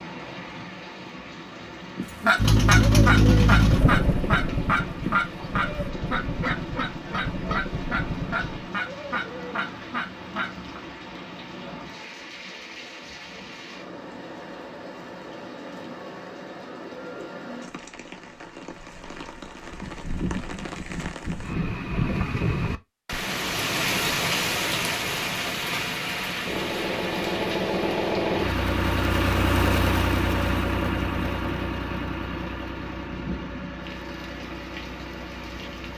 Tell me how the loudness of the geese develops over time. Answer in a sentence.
The volume of the geese goes down.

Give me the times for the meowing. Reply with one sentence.
You can't hear the meowing here.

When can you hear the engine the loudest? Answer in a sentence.
The loudest moment of the engine is at 3 seconds.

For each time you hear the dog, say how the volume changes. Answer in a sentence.
The dog can't be heard in this clip.